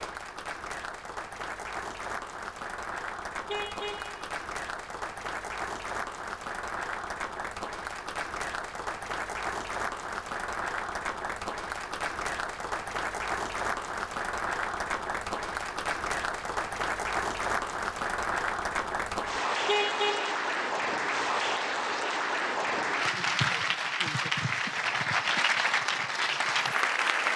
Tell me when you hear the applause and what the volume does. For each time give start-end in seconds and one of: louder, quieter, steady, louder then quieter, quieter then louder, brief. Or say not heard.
0.0-27.3 louder.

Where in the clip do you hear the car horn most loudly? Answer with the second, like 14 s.
20 s.